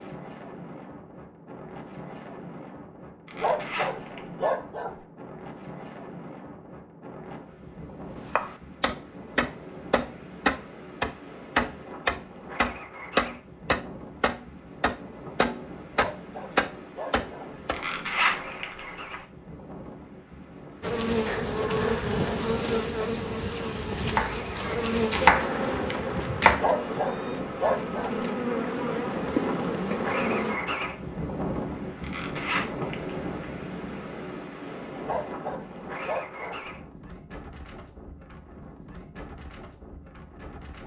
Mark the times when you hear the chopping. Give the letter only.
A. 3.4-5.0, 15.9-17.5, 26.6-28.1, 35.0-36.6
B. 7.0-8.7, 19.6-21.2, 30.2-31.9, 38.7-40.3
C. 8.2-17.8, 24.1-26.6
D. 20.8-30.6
C.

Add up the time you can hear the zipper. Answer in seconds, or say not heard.
4 s.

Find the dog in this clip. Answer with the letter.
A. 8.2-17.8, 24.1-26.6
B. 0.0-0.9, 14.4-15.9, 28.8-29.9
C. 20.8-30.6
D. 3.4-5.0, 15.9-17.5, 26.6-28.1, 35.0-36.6
D.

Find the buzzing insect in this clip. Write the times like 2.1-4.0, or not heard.
20.8-30.6.